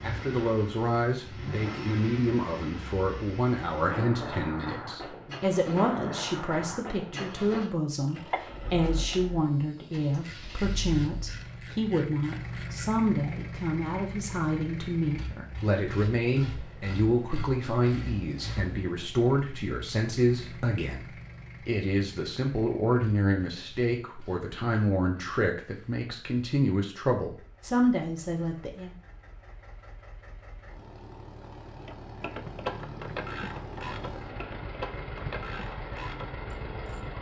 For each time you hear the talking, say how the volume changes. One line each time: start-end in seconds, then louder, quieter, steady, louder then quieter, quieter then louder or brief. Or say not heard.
0.0-28.9 steady.